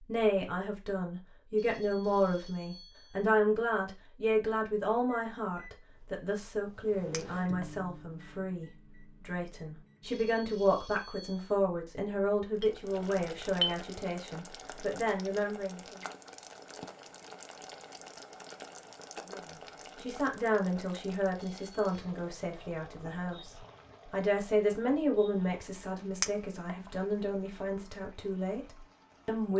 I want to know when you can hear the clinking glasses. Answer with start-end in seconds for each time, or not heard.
7.1-7.7, 12.6-13.8, 26.2-26.8.